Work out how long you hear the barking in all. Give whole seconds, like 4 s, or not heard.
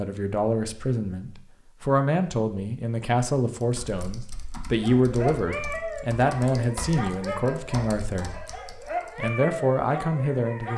6 s.